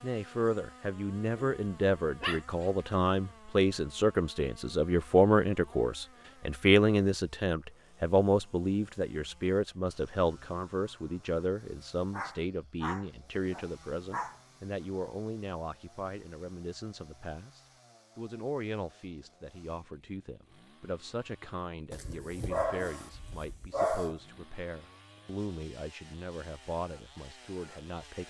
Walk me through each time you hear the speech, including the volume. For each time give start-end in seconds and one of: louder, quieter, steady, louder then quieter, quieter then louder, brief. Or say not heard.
0.0-28.2 quieter.